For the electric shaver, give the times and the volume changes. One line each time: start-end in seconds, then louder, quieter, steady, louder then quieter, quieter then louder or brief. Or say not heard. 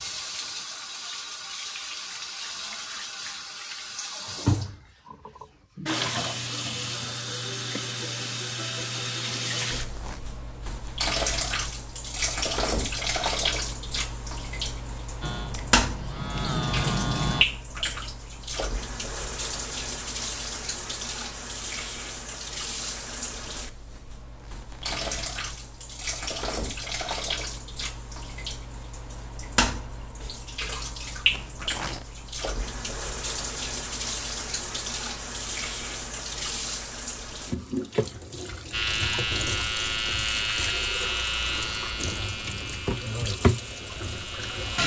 15.2-17.4 brief
38.7-44.8 quieter.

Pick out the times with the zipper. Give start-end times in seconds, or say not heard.
9.8-10.2, 24.2-25.2, 31.3-32.0.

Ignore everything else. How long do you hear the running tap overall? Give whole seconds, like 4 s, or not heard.
45 s.